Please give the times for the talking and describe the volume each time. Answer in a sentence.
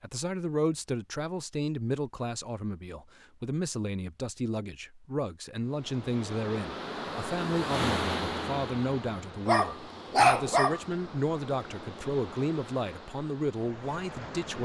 The talking can be heard from 0.0 to 14.6 s, at a steady volume.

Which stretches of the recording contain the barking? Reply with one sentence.
You can hear the barking from 9.4 to 10.8 s.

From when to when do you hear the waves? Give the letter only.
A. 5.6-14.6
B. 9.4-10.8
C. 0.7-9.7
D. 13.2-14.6
A.